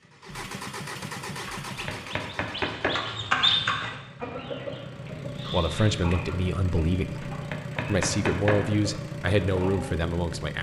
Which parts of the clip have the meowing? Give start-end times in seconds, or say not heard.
not heard.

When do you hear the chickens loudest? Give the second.
3 s.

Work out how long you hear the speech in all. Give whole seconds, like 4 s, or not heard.
5 s.